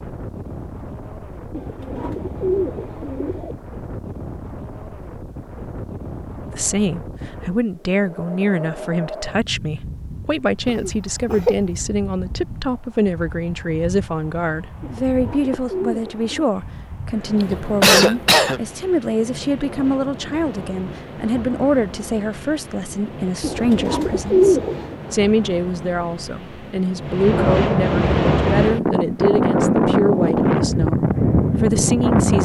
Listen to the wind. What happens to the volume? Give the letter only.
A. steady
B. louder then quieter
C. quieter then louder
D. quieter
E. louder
E.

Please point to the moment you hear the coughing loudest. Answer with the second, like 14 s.
18 s.